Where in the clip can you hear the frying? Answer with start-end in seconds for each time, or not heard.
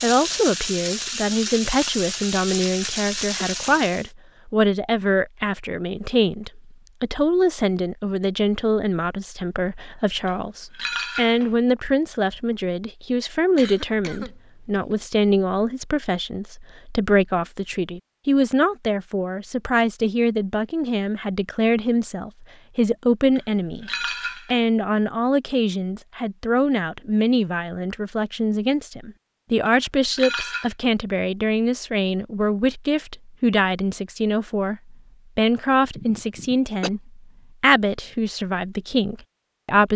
0.0-4.1.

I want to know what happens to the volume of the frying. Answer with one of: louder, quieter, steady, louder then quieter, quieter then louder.
steady.